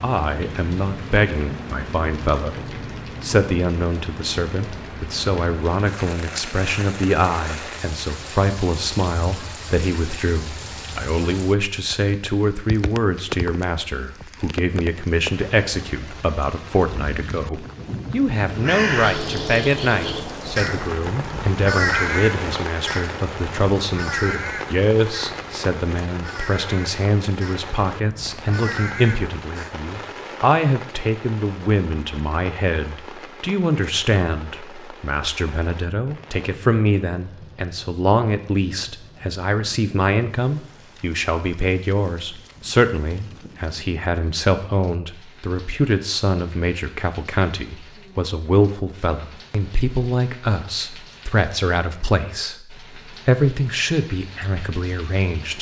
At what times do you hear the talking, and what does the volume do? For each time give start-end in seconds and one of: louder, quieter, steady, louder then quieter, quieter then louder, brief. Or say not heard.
0.0-55.5 steady.